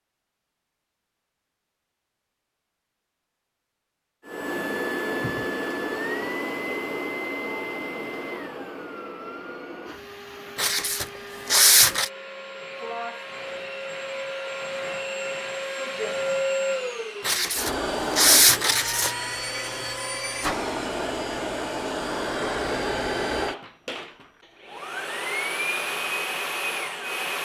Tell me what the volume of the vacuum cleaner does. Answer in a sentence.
The volume of the vacuum cleaner goes down, then up.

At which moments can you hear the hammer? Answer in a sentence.
You can't hear the hammer here.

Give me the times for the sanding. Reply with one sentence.
You can hear the sanding from 10.6 to 12.1 s and from 17.2 to 19.1 s.